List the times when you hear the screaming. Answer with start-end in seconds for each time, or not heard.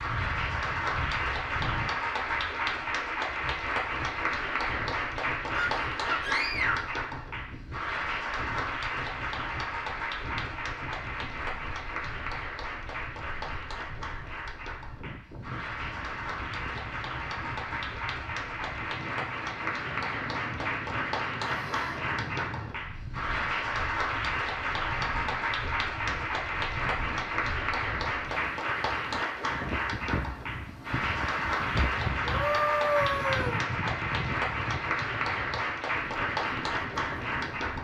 5.5-6.9, 21.4-22.0, 32.2-33.6.